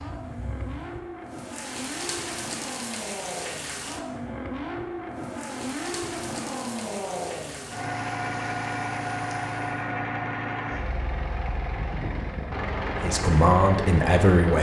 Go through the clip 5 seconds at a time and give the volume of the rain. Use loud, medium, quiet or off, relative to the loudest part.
loud, loud, off.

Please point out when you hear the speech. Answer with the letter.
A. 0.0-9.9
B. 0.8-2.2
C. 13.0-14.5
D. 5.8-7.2
C.